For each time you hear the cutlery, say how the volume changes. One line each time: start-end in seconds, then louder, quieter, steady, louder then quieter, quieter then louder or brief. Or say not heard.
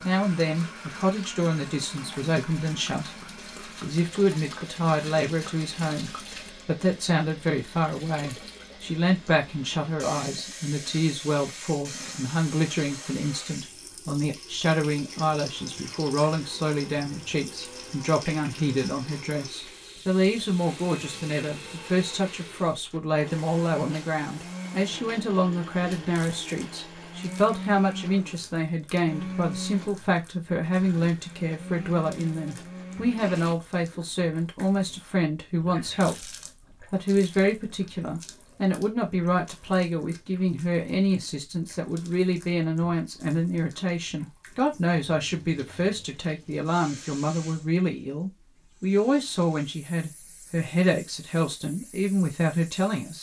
not heard.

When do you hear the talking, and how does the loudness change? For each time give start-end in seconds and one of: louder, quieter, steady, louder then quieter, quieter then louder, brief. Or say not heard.
0.0-36.3 steady
36.9-53.1 steady.